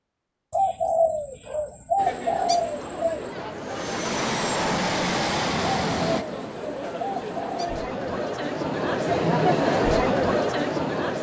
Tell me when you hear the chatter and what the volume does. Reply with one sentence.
You can hear the chatter from 1.9 to 11.1 s, getting louder.